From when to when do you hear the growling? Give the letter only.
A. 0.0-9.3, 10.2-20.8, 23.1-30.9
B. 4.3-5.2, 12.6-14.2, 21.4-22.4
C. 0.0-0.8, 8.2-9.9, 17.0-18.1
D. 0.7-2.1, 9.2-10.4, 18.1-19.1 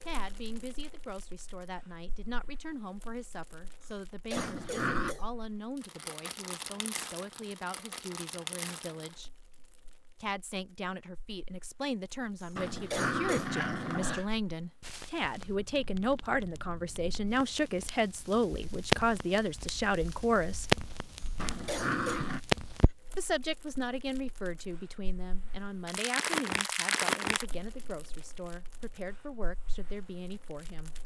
B.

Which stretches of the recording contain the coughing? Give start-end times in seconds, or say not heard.
3.8-5.2, 12.4-13.6, 21.2-22.2.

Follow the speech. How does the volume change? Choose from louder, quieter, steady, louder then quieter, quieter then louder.
louder then quieter.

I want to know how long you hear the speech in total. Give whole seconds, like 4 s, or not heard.
28 s.